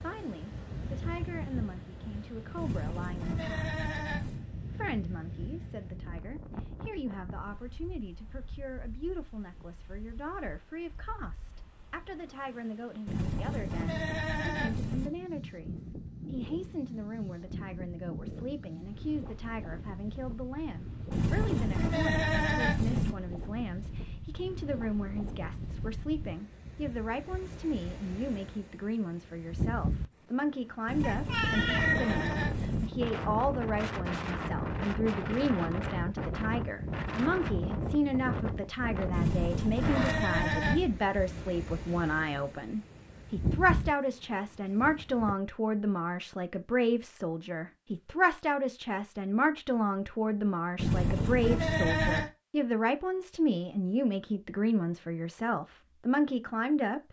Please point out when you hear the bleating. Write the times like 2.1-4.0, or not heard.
2.5-4.5, 13.1-15.1, 21.1-23.1, 30.9-32.9, 39.1-40.9, 50.8-52.3.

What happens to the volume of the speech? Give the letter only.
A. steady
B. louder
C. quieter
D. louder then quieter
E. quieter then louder
B.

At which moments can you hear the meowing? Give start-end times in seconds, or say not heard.
31.0-32.0.